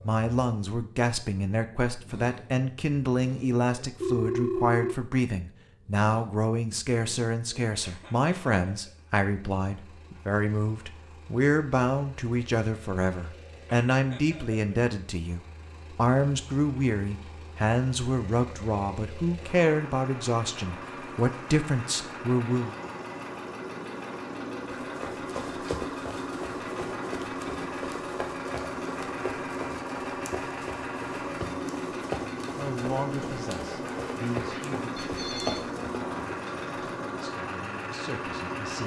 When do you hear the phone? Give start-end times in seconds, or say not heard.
4.0-5.0, 35.0-35.7.